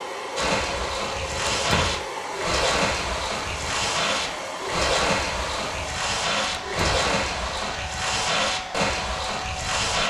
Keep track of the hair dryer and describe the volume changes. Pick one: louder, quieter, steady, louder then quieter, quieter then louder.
steady.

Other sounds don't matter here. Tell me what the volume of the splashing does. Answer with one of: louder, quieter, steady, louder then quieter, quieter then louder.
steady.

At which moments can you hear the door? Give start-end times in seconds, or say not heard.
1.4-2.0, 6.5-7.1.